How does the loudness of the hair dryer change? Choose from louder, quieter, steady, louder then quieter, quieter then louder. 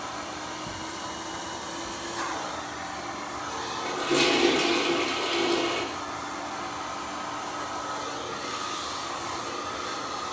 steady.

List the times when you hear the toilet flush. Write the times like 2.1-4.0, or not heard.
3.9-5.8.